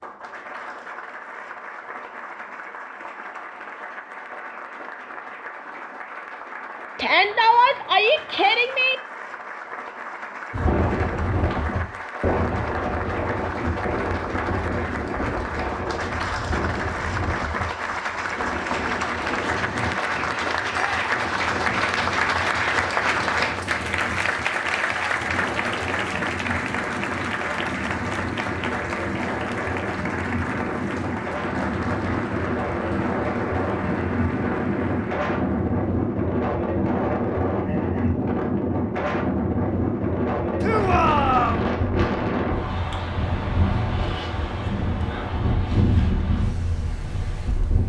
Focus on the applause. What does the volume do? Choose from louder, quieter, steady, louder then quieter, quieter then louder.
louder then quieter.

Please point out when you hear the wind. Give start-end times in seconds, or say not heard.
10.5-47.8.